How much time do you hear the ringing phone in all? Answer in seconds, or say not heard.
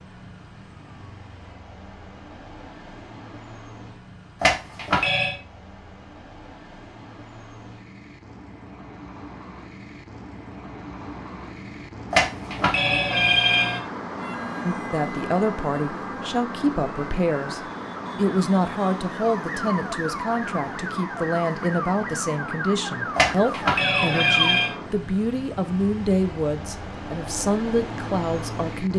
4 s.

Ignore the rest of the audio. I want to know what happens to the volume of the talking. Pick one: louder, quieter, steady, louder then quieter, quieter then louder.
steady.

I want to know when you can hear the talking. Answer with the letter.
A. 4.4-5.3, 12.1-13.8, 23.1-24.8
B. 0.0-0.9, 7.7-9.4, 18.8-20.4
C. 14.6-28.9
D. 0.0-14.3
C.